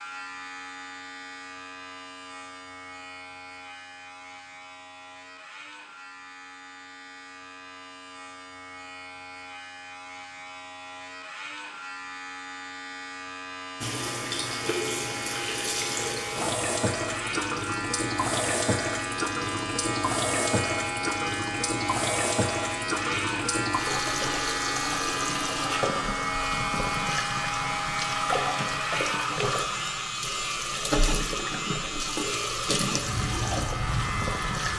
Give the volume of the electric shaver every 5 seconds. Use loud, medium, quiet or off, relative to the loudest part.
medium, quiet, medium, loud, loud, loud, loud.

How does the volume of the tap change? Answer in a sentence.
The loudness of the tap stays about the same.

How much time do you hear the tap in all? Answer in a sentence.
You can hear the tap for 21 seconds altogether.